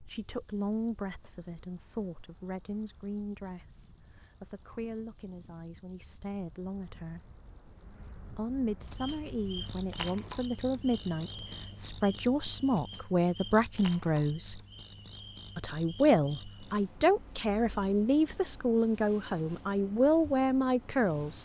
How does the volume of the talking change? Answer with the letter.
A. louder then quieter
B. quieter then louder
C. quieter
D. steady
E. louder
E.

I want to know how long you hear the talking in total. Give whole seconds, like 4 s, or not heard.
19 s.